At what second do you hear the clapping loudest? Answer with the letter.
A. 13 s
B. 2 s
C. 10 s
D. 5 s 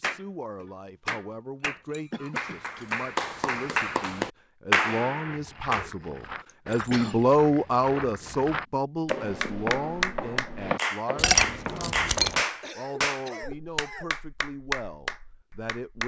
D.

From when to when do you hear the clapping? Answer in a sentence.
You can hear the clapping from 0.0 to 5.8 s and from 9.1 to 16.0 s.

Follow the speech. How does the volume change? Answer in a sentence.
The volume of the speech goes up, then down.